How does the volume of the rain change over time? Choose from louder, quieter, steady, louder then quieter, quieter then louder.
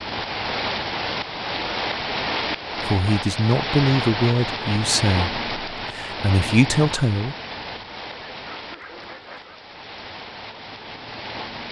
quieter.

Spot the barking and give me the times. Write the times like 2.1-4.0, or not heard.
8.1-9.7.